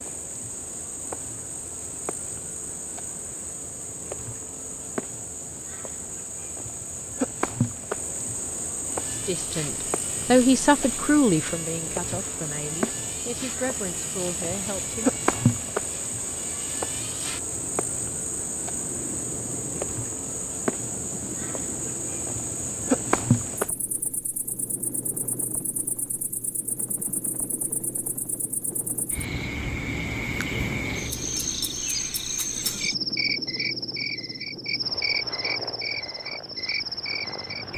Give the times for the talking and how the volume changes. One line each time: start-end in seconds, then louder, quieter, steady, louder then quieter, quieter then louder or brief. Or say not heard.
9.1-15.2 quieter.